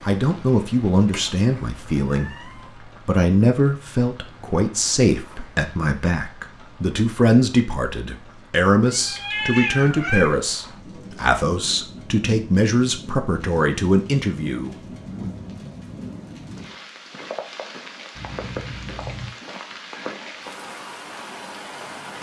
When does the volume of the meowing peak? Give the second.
10 s.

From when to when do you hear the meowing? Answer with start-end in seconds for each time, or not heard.
1.1-2.7, 8.8-10.3, 18.1-19.4.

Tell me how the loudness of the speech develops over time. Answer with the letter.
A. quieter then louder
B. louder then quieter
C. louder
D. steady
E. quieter
D.